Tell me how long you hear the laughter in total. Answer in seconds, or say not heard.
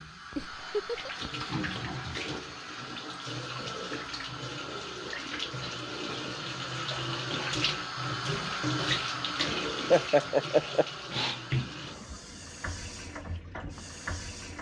2 s.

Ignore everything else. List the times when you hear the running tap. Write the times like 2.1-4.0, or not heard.
0.0-14.5.